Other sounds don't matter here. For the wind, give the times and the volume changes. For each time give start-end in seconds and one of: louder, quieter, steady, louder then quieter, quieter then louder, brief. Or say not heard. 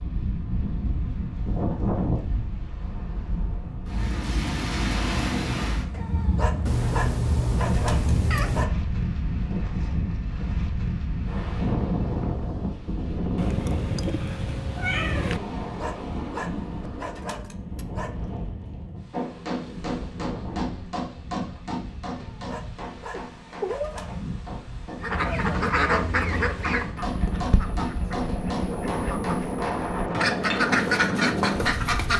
0.0-32.1 quieter then louder.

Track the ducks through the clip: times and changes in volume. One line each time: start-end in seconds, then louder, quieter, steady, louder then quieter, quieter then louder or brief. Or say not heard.
25.0-32.1 quieter then louder.